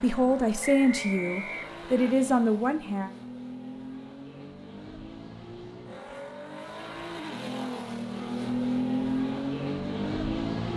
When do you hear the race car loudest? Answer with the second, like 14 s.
9 s.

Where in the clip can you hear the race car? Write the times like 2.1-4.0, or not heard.
0.0-10.7.